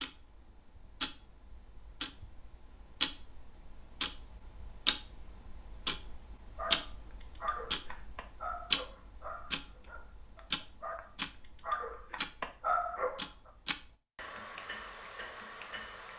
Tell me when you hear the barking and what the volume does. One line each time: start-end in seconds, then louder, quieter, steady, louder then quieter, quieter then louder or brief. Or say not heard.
6.5-13.2 quieter then louder.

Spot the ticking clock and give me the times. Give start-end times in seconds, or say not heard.
0.0-16.1.